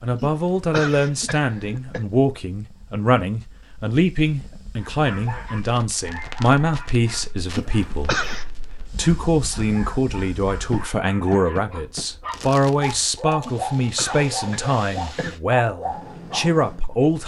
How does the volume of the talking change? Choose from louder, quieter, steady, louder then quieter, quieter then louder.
steady.